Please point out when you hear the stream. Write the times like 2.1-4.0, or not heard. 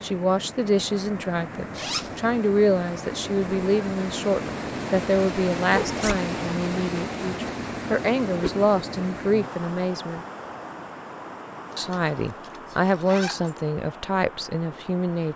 0.0-15.3.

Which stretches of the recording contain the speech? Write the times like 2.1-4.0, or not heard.
0.0-10.2, 11.8-15.3.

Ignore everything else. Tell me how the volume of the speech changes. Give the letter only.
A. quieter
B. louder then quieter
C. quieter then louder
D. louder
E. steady
E.